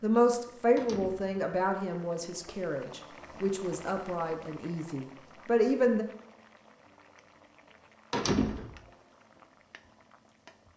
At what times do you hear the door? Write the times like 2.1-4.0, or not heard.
0.8-1.4, 8.1-8.8.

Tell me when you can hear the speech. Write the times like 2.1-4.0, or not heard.
0.0-6.0.